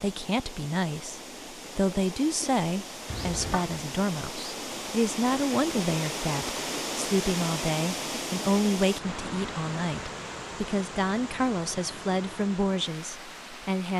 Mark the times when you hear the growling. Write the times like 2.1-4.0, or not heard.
3.0-3.8.